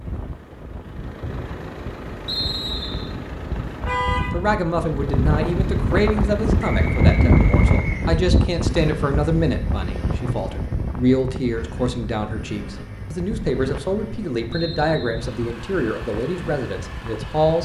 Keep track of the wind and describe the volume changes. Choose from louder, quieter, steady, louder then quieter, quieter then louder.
louder then quieter.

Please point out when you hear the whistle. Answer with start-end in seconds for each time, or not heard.
2.2-3.1, 6.6-8.1, 14.5-15.3.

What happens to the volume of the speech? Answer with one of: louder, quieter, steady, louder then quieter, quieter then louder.
steady.